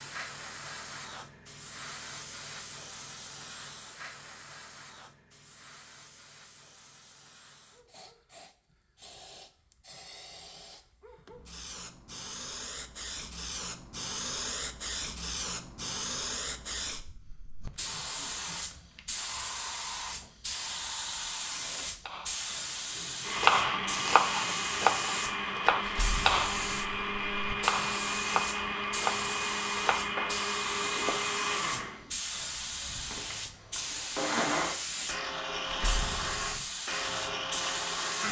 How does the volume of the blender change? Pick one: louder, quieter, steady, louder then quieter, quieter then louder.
steady.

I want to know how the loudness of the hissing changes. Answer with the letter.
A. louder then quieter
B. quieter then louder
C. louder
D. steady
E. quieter
C.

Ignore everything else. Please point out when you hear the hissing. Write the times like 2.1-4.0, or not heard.
0.0-38.2.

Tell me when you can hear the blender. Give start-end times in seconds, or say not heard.
22.9-38.2.